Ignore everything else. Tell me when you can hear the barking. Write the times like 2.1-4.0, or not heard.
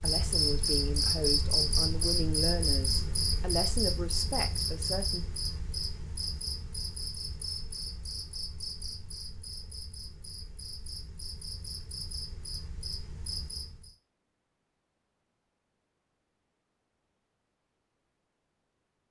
not heard.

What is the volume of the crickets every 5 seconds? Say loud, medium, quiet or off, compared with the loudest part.
loud, medium, quiet, off.